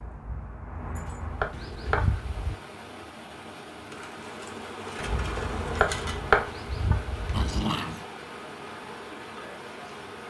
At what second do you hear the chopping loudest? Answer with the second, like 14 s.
6 s.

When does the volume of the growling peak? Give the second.
8 s.